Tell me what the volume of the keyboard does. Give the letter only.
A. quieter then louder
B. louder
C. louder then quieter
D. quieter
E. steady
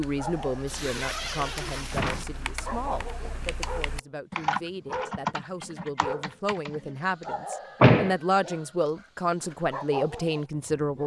C.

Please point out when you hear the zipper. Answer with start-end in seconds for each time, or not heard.
0.7-2.2.